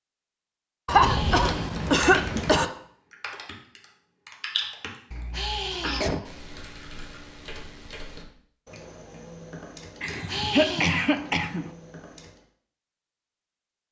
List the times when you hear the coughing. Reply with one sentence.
The coughing can be heard from 0.8 to 2.6 s, from 5.1 to 6.2 s and from 10.0 to 11.7 s.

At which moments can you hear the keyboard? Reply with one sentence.
You can hear the keyboard from 1.6 to 12.4 s.